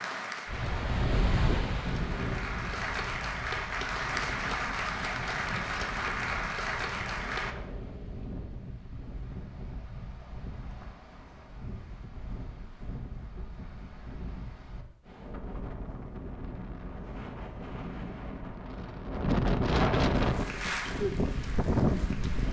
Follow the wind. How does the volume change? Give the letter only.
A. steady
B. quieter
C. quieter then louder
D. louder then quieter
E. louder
C.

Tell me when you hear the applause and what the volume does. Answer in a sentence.
The applause can be heard from 0.0 to 7.5 s, getting louder; and briefly from 20.1 to 22.4 s.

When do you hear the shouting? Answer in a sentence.
You can't hear the shouting here.